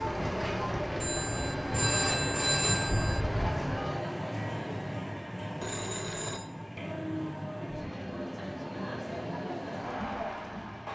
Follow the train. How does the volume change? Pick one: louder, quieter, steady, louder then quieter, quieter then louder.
quieter.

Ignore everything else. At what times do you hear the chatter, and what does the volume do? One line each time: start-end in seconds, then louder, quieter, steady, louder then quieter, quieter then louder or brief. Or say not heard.
0.0-10.8 quieter then louder.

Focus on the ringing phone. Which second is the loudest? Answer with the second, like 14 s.
3 s.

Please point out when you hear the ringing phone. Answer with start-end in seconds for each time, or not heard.
1.0-3.2, 5.6-6.5.